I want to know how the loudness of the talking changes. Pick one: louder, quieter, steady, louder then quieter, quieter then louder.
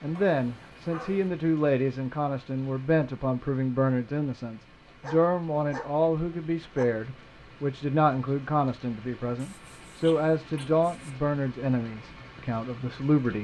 steady.